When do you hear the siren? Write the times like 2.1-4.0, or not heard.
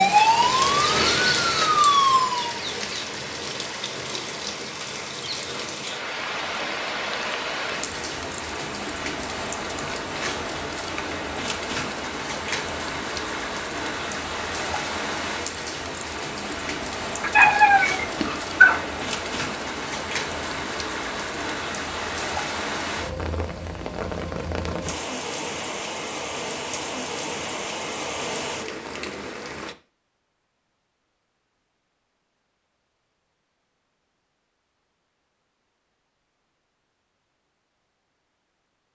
0.0-2.5.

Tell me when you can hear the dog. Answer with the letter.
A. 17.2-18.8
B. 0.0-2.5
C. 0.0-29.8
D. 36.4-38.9
A.